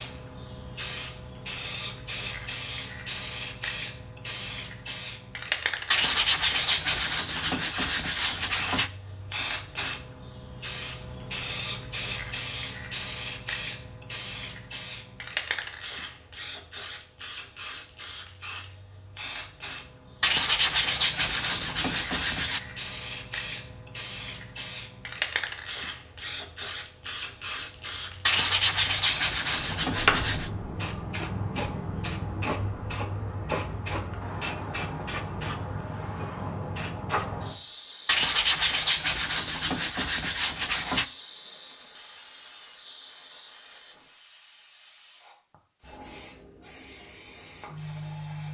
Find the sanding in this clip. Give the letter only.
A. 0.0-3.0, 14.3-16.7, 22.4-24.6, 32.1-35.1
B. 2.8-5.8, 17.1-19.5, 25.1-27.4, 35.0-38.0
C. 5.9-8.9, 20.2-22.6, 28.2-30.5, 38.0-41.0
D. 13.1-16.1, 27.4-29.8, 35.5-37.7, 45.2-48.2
C.